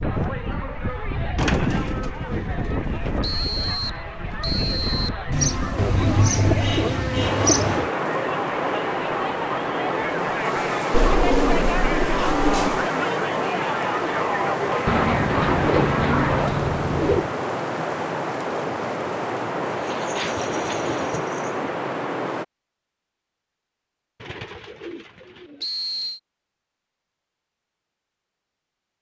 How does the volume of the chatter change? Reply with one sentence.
The volume of the chatter goes up.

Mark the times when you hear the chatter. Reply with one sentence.
You can hear the chatter from 0.0 to 16.5 s.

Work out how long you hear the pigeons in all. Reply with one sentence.
The pigeons can be heard for 12 seconds in total.